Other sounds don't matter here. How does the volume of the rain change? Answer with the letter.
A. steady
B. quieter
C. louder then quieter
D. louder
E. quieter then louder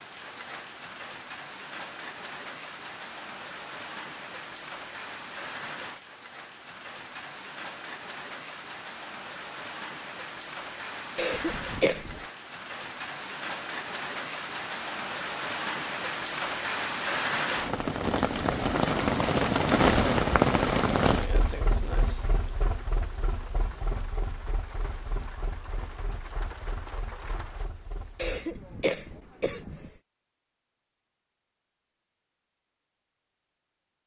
C.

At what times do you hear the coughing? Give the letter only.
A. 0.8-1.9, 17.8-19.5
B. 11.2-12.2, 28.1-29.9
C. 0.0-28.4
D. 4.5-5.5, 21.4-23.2
B.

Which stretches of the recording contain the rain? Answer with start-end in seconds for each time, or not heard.
0.0-28.4.